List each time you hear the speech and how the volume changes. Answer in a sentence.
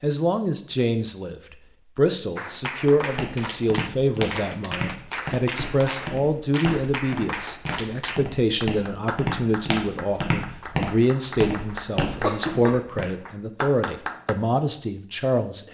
The speech can be heard from 0.0 to 15.7 s, at a steady volume.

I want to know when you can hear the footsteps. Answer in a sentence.
You can hear the footsteps from 3.0 to 13.1 s.